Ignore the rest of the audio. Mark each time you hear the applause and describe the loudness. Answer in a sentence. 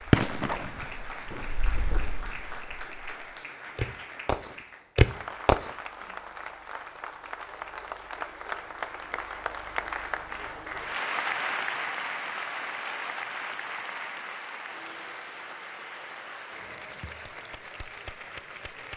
The applause can be heard from 0.0 to 18.9 s, getting louder then quieter.